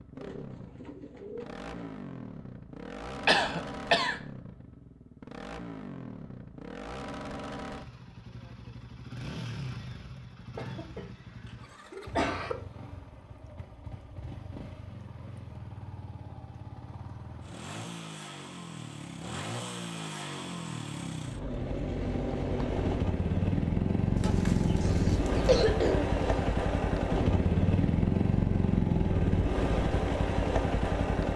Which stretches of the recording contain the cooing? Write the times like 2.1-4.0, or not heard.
0.1-1.9, 24.1-25.6.